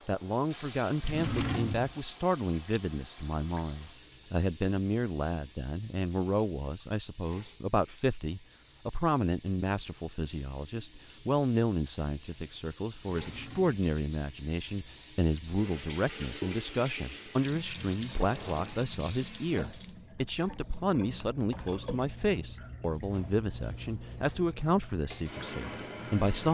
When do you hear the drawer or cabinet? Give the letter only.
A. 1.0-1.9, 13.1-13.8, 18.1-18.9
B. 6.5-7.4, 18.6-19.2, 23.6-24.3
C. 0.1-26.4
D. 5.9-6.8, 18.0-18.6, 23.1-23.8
A.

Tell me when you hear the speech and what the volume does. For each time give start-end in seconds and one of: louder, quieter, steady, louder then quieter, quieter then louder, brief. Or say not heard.
0.1-26.4 steady.